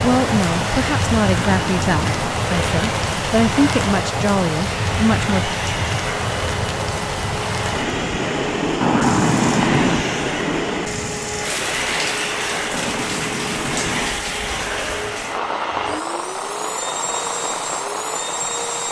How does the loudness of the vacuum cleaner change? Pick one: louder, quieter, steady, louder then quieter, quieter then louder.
steady.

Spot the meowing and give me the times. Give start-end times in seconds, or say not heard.
1.4-2.4, 8.8-10.1, 12.7-14.2.